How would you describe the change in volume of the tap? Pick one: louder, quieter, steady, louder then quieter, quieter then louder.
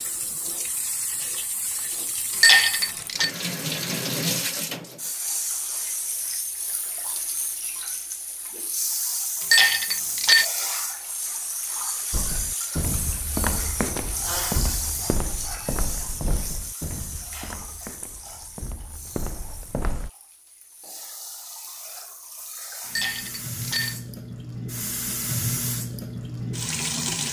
quieter then louder.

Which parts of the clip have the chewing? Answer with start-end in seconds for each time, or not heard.
not heard.